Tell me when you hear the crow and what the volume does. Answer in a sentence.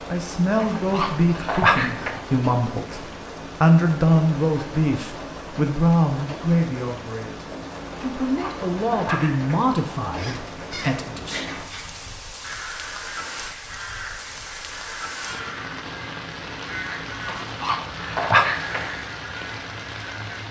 The crow can be heard from 10.2 to 20.4 s, at a steady volume.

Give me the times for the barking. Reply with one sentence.
The barking can be heard from 0.6 to 2.2 s, from 8.2 to 9.7 s and from 17.2 to 18.9 s.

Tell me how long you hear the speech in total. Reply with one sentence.
You can hear the speech for 11 seconds altogether.